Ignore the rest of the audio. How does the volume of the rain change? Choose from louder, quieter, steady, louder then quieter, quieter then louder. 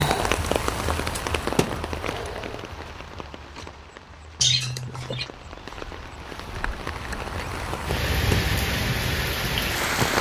quieter then louder.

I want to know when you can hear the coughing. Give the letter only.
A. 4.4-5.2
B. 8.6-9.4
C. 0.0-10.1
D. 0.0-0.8
A.